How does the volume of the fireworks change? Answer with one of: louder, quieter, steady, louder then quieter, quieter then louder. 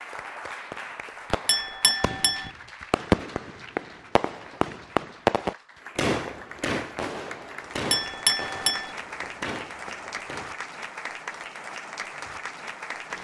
louder then quieter.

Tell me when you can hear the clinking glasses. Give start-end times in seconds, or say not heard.
1.4-2.5, 7.9-8.9.